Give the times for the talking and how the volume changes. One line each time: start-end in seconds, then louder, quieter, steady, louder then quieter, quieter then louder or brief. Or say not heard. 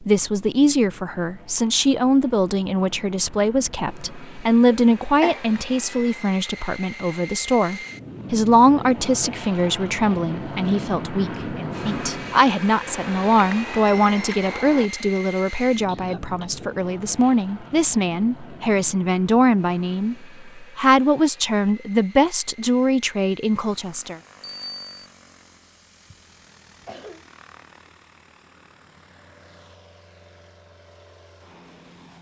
0.0-24.2 steady.